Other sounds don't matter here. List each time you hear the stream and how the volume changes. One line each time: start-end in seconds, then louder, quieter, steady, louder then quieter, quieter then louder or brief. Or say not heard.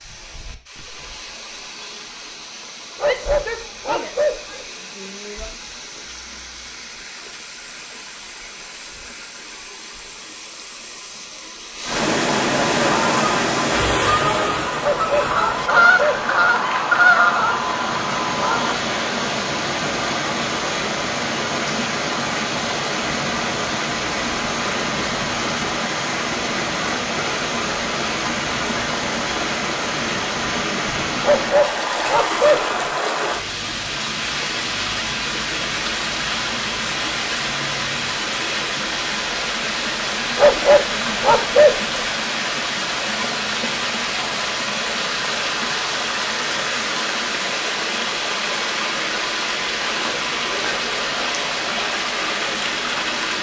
0.0-53.3 louder.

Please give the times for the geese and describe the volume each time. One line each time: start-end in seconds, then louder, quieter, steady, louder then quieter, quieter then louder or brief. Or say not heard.
12.8-18.8 louder then quieter.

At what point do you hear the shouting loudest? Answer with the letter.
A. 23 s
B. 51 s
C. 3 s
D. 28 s
C.